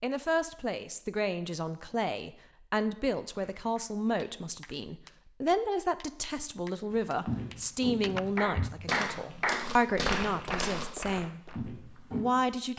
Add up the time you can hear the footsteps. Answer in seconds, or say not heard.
5 s.